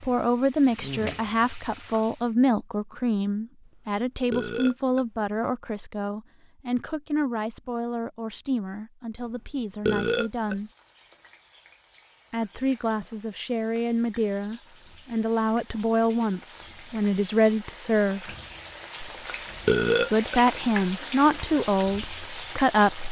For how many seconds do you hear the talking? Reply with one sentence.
You can hear the talking for 20 seconds altogether.